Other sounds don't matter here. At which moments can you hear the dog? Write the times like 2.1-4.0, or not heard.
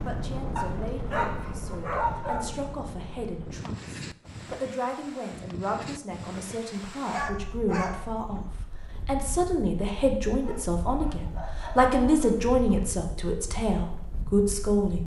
0.6-2.5, 7.0-8.5, 10.4-12.9.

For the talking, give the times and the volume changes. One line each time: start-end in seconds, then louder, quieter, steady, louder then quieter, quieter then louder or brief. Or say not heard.
0.1-15.0 louder.